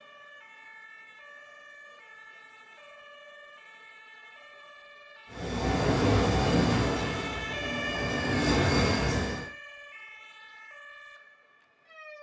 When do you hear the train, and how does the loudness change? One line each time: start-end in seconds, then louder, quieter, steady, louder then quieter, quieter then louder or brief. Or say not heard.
5.3-9.5 quieter then louder.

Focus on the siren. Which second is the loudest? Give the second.
8 s.